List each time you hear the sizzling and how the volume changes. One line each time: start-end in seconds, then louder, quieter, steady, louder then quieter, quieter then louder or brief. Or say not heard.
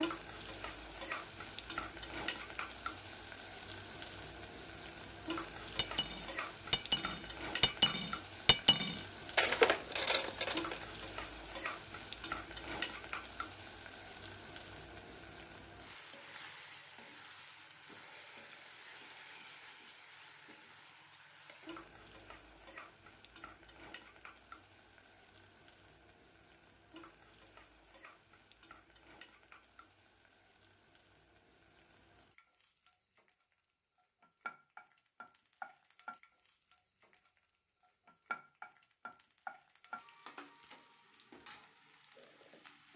0.0-42.9 quieter then louder.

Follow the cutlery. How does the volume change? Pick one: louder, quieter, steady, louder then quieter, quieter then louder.
steady.